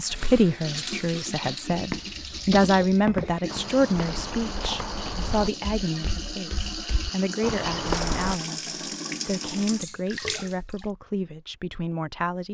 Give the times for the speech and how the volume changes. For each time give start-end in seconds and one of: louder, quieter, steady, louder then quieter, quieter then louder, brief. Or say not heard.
0.0-12.4 quieter.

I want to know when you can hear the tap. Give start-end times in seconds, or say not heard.
0.0-10.8.